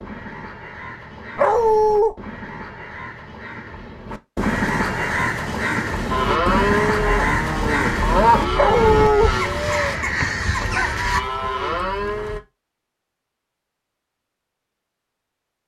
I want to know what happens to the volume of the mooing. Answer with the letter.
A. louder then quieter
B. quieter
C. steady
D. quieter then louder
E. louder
D.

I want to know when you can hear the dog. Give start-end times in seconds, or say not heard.
1.4-2.1, 8.6-9.3.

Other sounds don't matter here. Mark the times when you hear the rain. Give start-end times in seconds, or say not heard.
not heard.